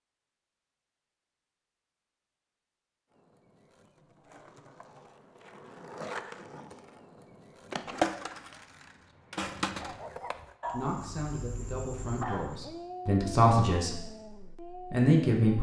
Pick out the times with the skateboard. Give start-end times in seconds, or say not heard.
3.1-10.5.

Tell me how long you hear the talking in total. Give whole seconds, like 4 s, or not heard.
4 s.